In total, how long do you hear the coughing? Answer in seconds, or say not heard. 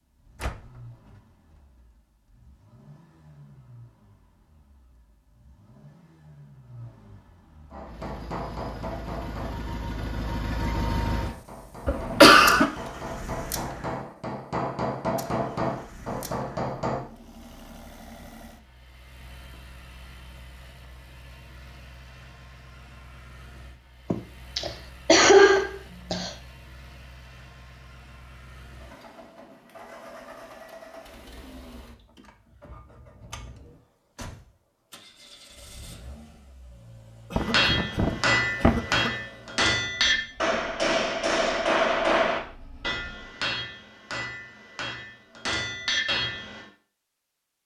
5 s.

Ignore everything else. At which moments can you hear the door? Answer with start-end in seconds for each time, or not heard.
0.3-1.2.